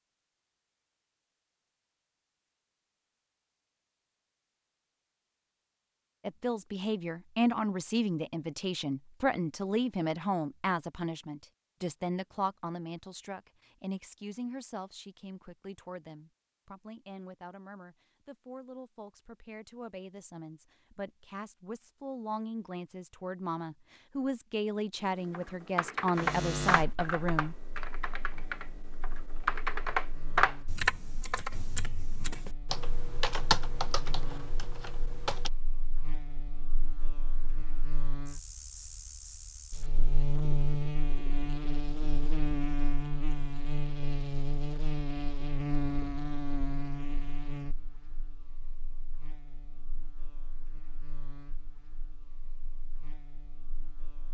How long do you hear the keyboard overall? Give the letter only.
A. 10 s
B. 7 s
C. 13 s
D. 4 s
A.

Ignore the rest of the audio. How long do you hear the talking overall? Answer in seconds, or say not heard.
21 s.